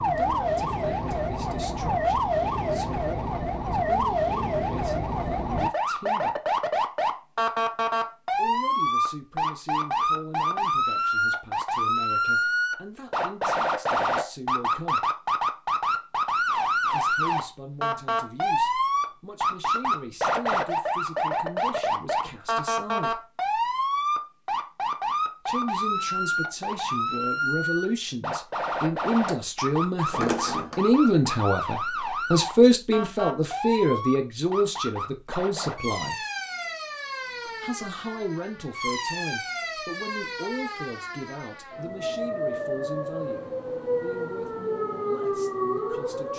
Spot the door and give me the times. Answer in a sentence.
The door can be heard from 30.1 to 30.8 s.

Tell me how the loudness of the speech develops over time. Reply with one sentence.
The volume of the speech goes up, then down.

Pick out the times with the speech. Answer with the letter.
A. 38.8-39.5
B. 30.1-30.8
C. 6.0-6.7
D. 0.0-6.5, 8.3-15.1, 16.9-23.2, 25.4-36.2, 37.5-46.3
D.